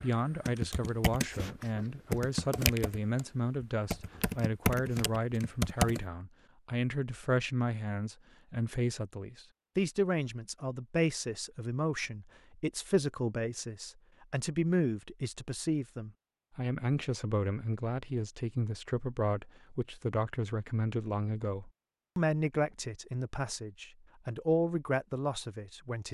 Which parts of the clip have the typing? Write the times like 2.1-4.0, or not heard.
0.0-6.0.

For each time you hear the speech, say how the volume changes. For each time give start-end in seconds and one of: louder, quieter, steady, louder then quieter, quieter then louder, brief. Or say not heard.
0.0-26.0 steady.